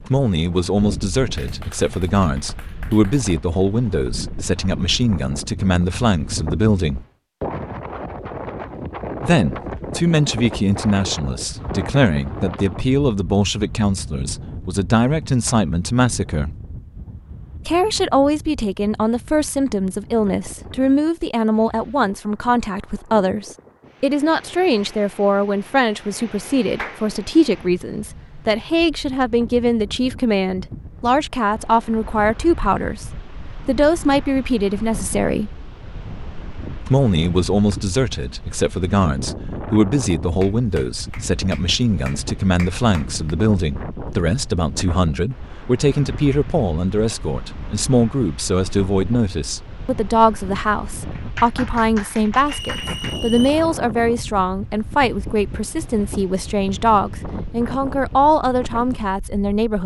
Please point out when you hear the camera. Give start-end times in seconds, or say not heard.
not heard.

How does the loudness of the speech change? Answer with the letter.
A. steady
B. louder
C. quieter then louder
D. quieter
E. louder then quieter
A.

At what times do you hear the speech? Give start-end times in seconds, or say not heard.
0.1-7.0, 9.2-16.6, 17.6-35.5, 36.9-59.8.